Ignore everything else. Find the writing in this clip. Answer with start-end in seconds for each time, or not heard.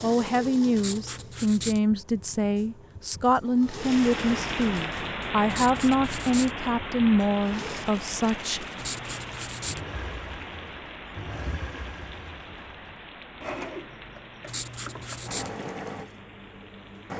0.8-1.8, 5.5-6.5, 8.8-9.8, 14.4-15.5.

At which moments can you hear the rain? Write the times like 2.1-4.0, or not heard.
3.6-17.1.